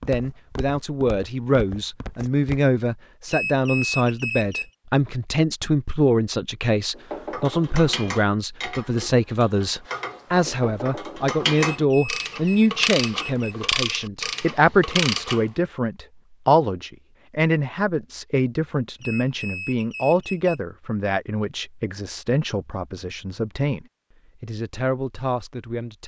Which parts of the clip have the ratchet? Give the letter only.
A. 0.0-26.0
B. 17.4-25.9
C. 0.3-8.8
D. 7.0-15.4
D.